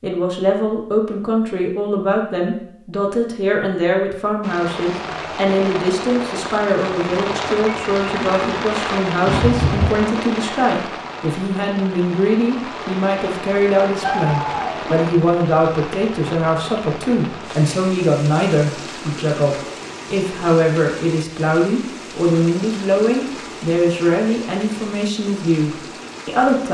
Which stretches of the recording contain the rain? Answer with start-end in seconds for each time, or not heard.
4.4-26.6.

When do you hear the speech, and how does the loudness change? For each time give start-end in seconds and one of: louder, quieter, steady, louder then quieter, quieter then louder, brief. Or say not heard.
0.0-26.6 steady.